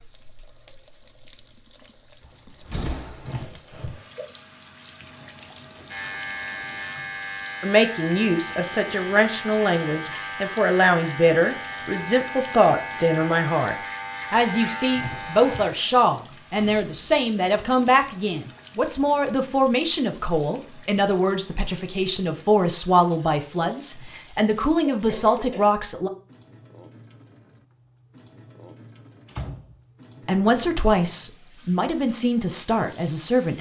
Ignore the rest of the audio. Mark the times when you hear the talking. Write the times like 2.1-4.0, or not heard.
7.6-26.1, 30.2-33.5.